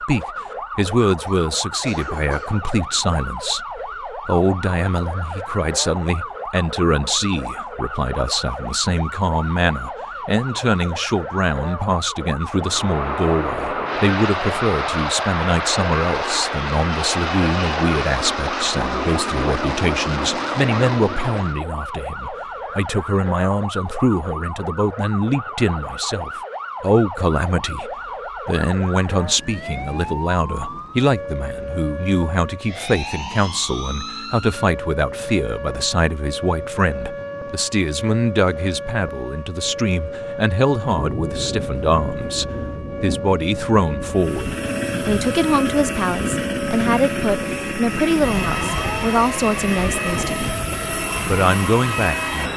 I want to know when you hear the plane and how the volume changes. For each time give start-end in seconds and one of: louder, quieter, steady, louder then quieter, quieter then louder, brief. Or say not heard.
12.6-21.6 steady
44.1-52.5 steady.